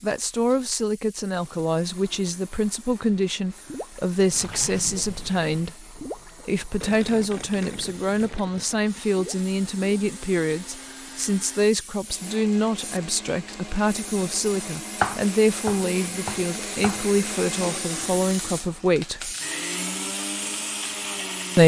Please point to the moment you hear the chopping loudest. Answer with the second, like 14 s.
15 s.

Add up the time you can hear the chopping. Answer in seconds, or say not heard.
2 s.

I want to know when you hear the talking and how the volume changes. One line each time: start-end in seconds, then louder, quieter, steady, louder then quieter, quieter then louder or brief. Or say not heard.
0.0-19.4 steady.